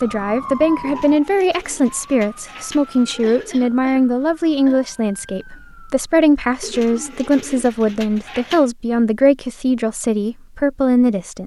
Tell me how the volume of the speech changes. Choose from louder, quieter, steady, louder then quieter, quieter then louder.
steady.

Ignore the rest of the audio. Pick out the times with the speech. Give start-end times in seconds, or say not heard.
0.0-11.4.